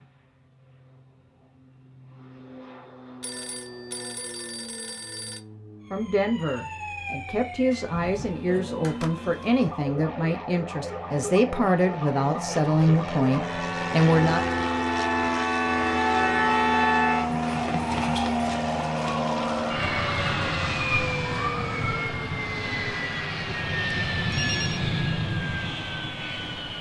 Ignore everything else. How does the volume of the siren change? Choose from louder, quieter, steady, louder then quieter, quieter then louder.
louder then quieter.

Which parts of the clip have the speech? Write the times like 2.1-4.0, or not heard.
5.9-14.4.